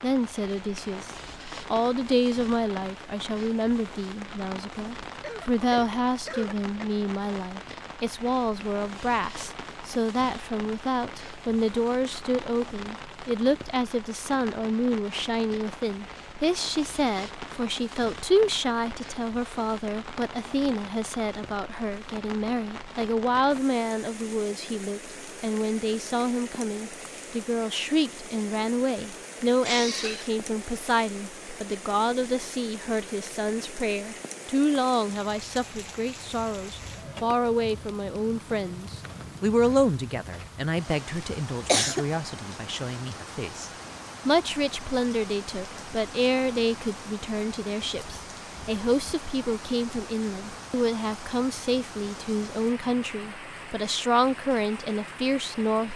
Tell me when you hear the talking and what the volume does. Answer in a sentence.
You can hear the talking briefly from 0.0 to 1.1 s; and from 1.7 to 55.9 s, at a steady volume.